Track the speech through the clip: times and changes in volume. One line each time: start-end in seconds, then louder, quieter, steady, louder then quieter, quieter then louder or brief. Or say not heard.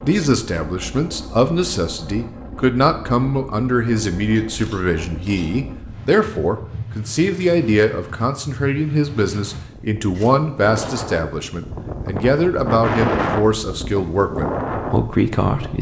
0.0-15.7 steady.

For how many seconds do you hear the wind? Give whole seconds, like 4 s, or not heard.
16 s.